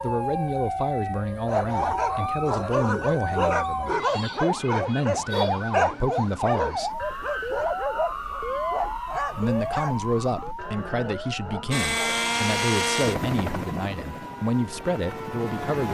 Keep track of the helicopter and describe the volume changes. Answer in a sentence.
The volume of the helicopter goes down.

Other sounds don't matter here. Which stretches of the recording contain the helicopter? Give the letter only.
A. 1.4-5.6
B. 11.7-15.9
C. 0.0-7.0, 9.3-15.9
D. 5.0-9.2
B.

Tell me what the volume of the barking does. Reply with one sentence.
The loudness of the barking goes down.